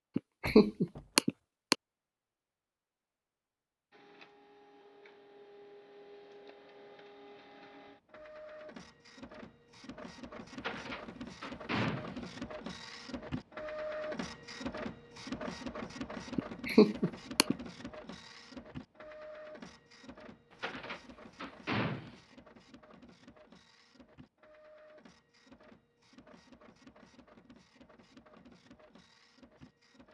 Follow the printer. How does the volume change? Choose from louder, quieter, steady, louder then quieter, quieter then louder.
louder then quieter.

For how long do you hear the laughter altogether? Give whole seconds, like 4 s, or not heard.
3 s.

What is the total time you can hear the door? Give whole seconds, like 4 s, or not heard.
4 s.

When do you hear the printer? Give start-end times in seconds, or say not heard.
3.9-30.0.